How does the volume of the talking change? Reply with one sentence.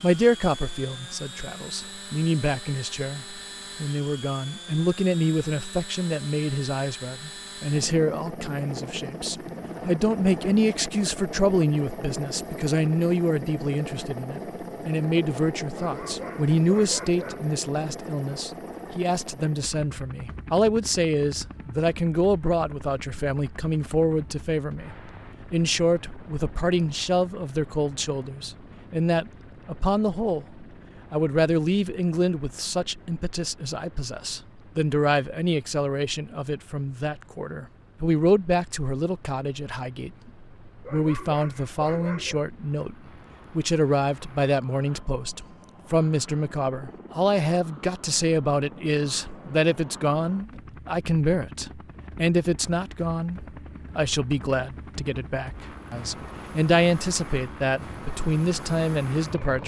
The volume of the talking stays about the same.